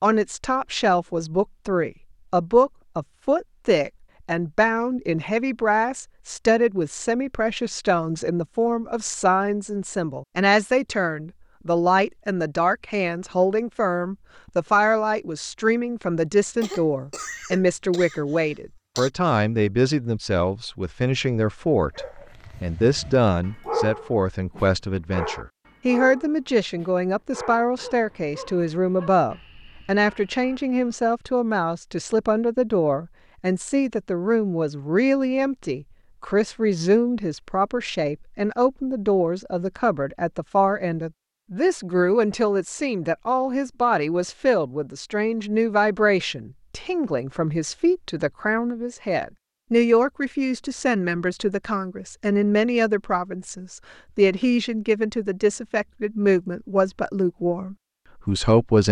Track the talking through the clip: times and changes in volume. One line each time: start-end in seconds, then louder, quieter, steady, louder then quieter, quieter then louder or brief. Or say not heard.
0.0-58.8 steady.